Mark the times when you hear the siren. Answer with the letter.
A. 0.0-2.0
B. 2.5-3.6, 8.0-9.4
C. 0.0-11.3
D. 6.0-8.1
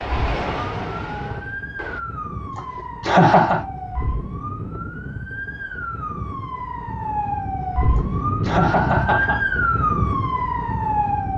C.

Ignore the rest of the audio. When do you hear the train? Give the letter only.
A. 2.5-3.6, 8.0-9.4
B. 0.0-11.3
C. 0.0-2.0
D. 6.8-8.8
C.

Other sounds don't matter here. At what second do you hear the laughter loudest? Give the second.
3 s.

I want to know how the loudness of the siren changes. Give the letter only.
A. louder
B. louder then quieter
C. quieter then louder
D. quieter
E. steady
A.